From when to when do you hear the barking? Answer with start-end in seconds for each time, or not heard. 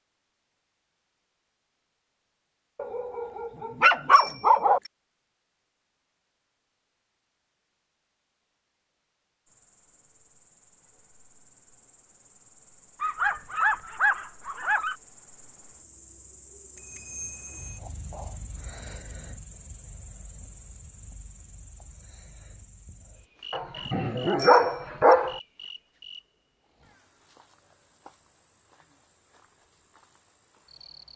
2.8-4.8, 13.0-14.9, 23.5-25.4.